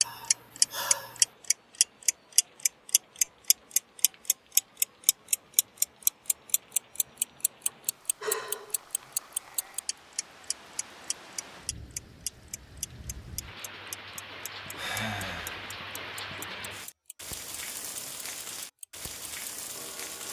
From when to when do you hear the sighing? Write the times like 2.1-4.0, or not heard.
0.0-1.3, 7.7-8.8, 14.8-15.8.